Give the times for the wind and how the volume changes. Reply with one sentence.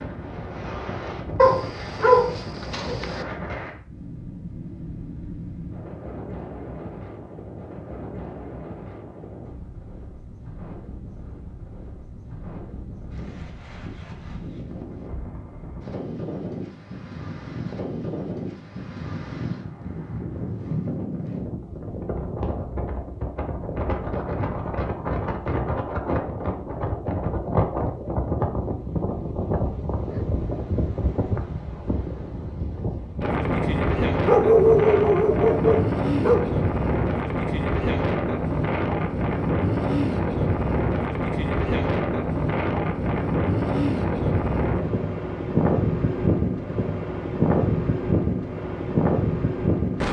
You can hear the wind from 0.0 to 50.0 s, getting louder.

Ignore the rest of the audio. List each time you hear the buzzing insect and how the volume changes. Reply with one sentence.
You can't hear the buzzing insect here.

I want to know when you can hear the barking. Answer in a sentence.
The barking can be heard from 1.4 to 3.2 s and from 34.2 to 36.5 s.